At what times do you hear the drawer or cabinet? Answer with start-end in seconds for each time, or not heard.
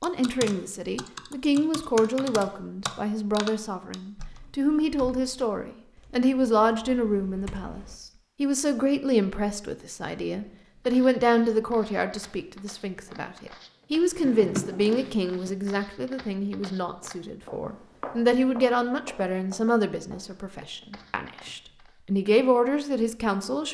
14.1-15.6.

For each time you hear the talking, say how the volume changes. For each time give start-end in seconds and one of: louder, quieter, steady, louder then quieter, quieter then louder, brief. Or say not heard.
0.0-23.6 steady.